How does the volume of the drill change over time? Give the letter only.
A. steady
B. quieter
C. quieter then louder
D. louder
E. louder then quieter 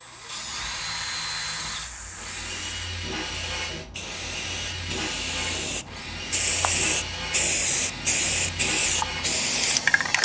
A.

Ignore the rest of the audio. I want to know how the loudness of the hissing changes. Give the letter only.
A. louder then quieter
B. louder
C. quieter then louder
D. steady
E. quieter
B.